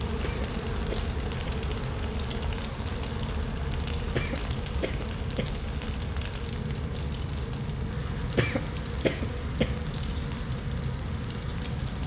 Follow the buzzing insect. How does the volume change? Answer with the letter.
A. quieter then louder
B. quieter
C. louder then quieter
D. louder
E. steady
B.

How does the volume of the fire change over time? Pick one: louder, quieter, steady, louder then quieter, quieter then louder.
steady.